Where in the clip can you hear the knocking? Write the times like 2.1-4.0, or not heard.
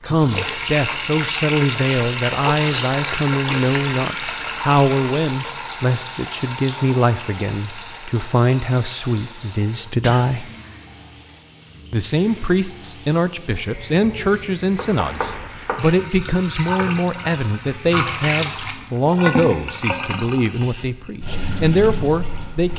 14.8-15.8.